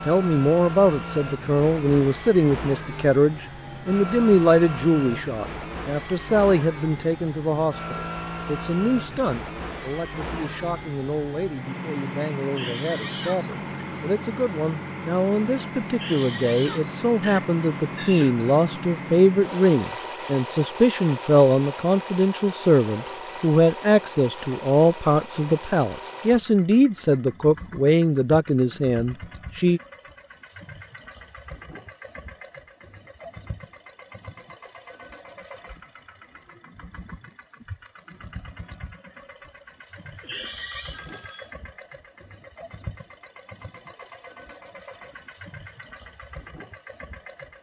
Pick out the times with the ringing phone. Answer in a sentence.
You can hear the ringing phone from 40.9 to 41.5 s.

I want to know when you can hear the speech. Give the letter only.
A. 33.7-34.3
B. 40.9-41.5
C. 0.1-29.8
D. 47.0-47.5
C.